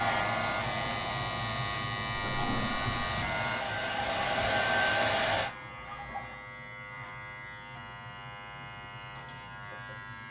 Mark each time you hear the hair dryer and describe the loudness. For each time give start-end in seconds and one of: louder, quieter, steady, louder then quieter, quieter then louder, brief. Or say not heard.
0.0-5.5 quieter then louder.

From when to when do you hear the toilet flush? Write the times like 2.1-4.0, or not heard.
2.1-3.0, 5.4-6.5.